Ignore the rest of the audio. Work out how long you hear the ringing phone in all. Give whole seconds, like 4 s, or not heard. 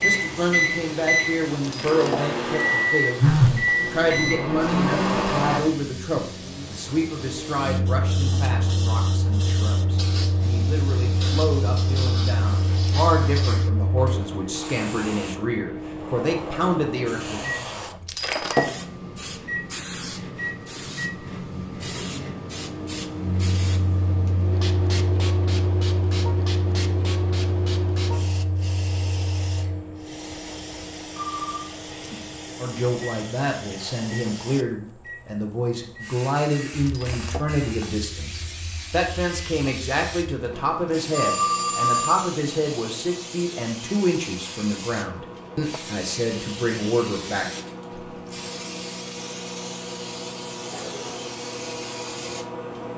3 s.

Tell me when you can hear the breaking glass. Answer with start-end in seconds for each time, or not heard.
1.6-2.3, 18.1-18.7, 36.9-37.5.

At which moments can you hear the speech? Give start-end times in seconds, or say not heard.
0.0-17.4, 32.5-47.5.